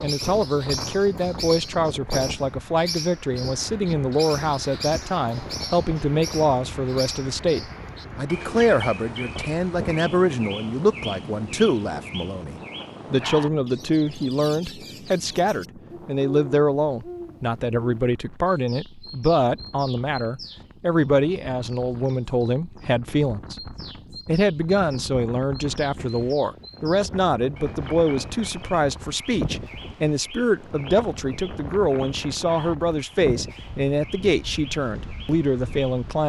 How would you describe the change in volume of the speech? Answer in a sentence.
The loudness of the speech stays about the same.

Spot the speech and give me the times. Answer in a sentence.
You can hear the speech from 0.0 to 36.2 s.